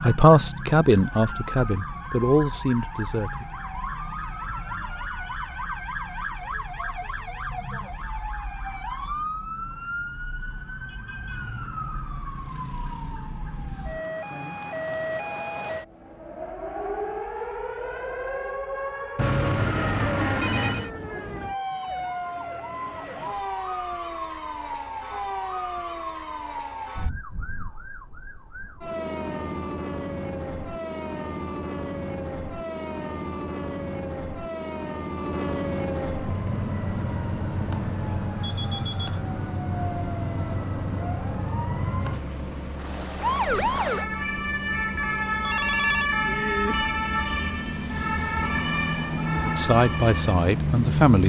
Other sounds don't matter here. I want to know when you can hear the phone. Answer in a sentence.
The phone can be heard from 19.1 to 20.9 s and from 45.4 to 46.1 s.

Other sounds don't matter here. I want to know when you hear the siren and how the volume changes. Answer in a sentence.
You can hear the siren from 0.0 to 51.2 s, getting louder.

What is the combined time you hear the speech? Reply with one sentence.
You can hear the speech for 5 seconds altogether.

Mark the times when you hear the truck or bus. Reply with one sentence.
The truck or bus can be heard from 36.2 to 51.1 s.